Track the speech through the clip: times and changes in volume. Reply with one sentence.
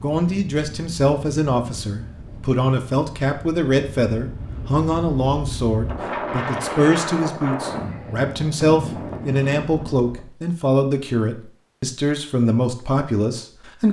The speech can be heard from 0.0 to 13.8 s, at a steady volume.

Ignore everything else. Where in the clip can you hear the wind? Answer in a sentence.
The wind can be heard from 0.0 to 10.2 s.